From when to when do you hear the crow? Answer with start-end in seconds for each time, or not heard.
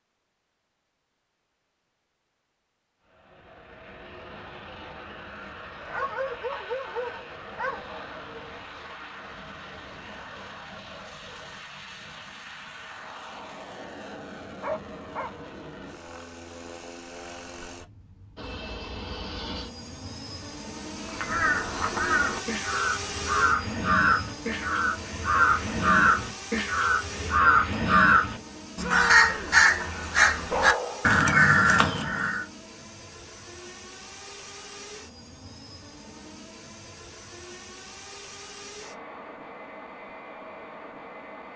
20.9-32.5.